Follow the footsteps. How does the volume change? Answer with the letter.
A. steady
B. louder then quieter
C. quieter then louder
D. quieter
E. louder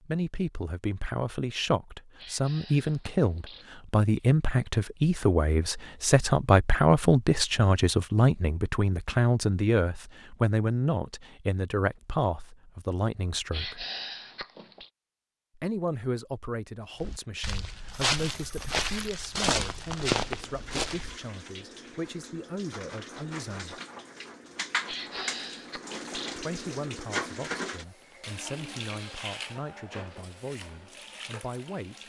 E.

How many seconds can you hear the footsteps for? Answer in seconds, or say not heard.
4 s.